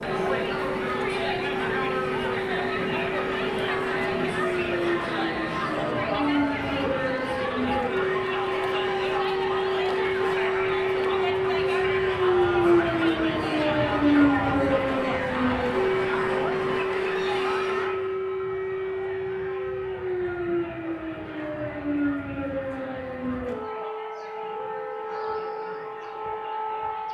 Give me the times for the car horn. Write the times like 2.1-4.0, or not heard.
not heard.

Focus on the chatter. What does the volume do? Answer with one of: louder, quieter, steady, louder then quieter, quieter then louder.
quieter.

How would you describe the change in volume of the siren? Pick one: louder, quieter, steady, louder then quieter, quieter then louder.
louder then quieter.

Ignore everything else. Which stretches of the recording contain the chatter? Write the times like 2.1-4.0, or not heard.
0.0-27.0.